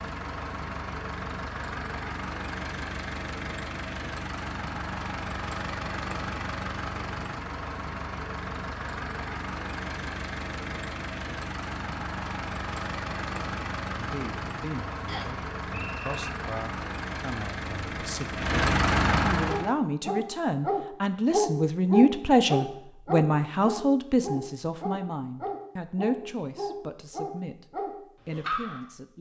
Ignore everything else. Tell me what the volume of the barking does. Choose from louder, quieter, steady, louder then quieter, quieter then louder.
quieter.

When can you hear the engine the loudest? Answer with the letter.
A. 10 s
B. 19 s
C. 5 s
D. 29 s
B.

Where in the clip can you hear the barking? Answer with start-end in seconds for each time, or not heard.
19.4-28.8.